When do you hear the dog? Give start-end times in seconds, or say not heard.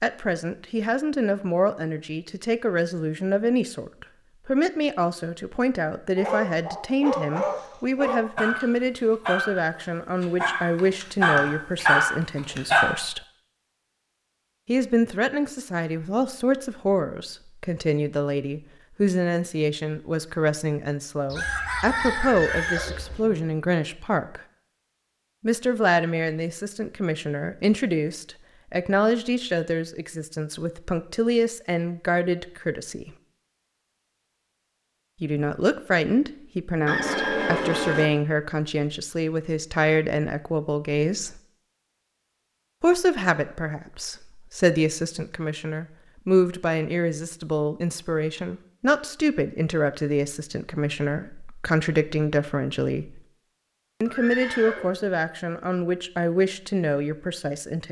6.2-12.8.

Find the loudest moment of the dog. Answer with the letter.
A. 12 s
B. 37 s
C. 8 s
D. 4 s
A.